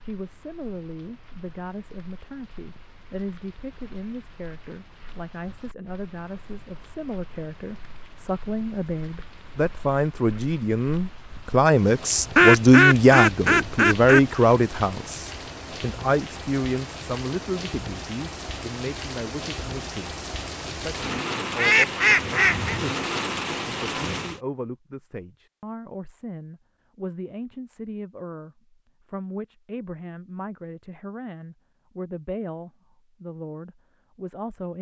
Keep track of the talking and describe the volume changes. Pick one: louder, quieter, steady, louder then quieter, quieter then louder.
louder then quieter.